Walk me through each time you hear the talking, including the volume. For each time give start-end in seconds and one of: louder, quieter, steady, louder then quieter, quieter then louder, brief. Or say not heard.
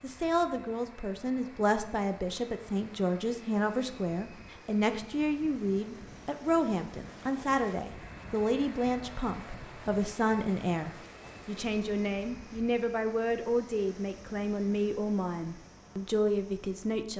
0.0-17.1 steady.